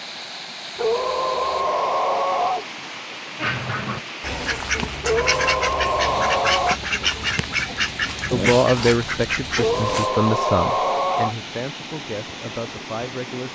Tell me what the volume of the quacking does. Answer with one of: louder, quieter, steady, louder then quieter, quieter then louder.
steady.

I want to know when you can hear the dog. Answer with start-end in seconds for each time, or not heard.
0.8-2.6, 5.0-6.8, 9.6-11.3.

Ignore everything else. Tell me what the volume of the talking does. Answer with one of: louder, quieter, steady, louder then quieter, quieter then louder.
quieter.